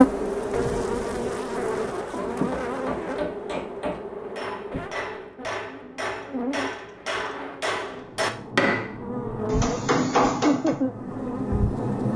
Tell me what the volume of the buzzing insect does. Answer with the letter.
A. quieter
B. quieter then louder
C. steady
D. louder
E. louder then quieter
B.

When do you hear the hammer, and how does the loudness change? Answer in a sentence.
You can hear the hammer from 2.3 to 10.8 s, getting louder.